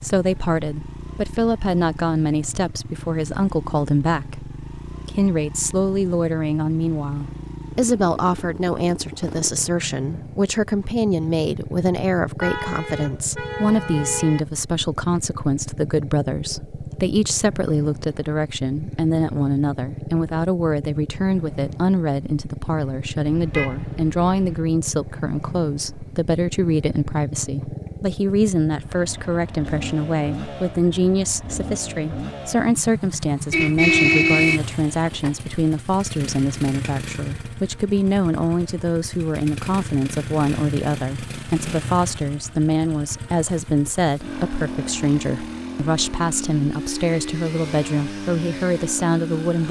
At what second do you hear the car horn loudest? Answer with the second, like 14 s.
34 s.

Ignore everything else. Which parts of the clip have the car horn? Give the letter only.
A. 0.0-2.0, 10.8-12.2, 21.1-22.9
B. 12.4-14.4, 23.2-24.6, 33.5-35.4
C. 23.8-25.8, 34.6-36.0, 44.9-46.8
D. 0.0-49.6
B.